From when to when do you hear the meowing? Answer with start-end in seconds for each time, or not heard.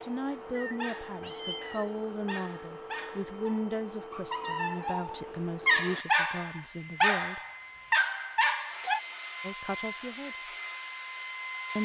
0.6-1.9.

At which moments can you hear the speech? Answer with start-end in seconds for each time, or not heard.
0.0-7.4, 9.4-10.6.